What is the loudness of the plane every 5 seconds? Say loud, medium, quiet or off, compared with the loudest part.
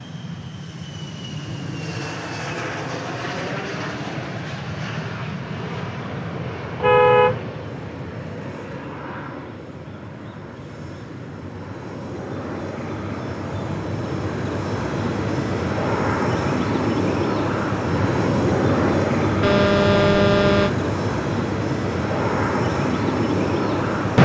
medium, medium, medium, loud, loud.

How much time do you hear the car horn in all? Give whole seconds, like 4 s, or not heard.
2 s.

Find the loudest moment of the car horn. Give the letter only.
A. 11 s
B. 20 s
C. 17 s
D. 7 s
D.